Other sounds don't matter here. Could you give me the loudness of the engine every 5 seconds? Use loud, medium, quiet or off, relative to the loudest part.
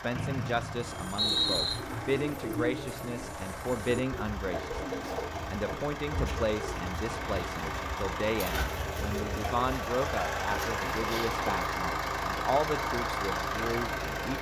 medium, medium, loud.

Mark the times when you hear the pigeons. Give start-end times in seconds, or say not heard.
0.8-11.4.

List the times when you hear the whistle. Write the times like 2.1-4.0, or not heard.
0.1-1.8.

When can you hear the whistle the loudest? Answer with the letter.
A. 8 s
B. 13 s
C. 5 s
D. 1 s
D.